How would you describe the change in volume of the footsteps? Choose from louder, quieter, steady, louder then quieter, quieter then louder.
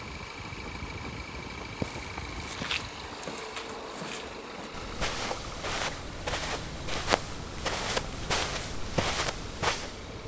louder.